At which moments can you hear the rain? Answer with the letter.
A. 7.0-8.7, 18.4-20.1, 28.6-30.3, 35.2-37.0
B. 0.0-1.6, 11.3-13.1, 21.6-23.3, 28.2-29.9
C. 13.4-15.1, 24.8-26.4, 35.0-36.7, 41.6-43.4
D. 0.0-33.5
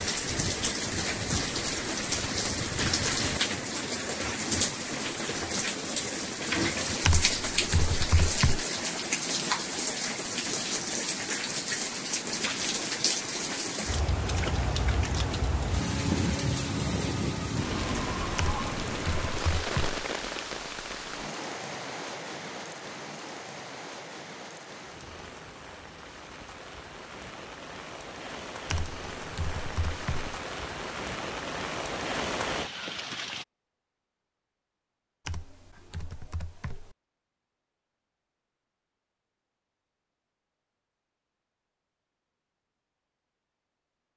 D.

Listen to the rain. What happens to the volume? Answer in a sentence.
The volume of the rain goes down.